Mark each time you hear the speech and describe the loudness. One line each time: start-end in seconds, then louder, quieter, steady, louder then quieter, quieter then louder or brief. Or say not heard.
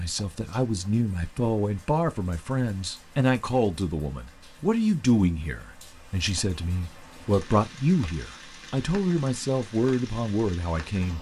0.0-11.1 steady.